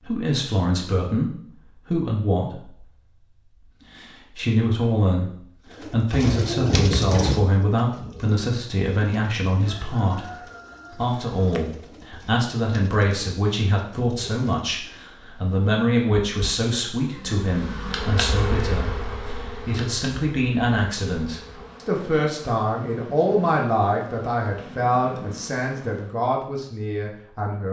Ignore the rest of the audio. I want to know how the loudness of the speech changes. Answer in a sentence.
The loudness of the speech stays about the same.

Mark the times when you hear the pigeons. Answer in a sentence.
The pigeons can be heard from 5.7 to 15.1 s.